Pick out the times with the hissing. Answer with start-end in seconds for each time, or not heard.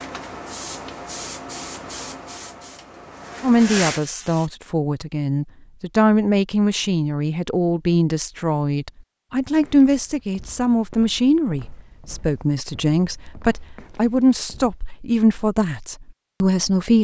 0.0-4.5.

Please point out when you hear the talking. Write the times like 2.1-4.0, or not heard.
3.4-16.9.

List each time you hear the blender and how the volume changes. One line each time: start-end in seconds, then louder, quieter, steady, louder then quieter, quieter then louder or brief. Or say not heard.
not heard.